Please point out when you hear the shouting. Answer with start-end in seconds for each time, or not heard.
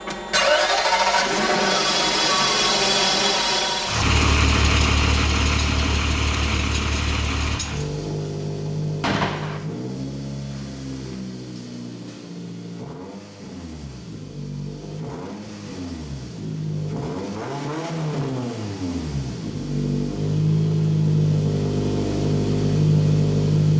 not heard.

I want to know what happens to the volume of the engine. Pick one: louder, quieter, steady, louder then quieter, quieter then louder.
quieter then louder.